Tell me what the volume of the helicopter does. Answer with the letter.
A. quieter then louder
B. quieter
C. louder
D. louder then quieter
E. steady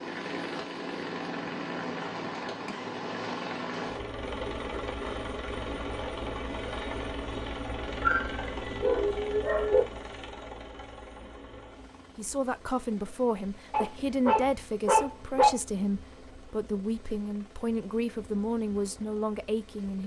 B.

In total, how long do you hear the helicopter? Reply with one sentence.
You can hear the helicopter for 20 seconds altogether.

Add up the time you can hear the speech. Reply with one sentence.
You can hear the speech for 8 seconds altogether.